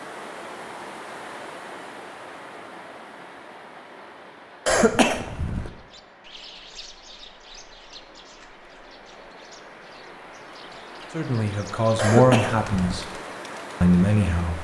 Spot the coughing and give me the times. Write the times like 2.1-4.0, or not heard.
4.7-5.7, 11.9-13.1.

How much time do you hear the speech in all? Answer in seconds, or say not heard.
3 s.